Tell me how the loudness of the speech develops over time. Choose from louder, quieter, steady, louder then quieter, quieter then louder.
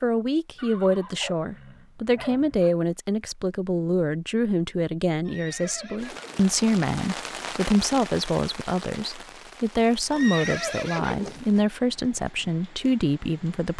steady.